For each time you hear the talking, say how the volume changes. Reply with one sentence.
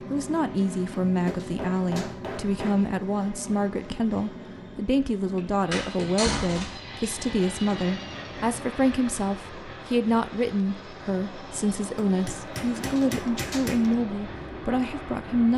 The talking can be heard from 0.0 to 15.5 s, at a steady volume.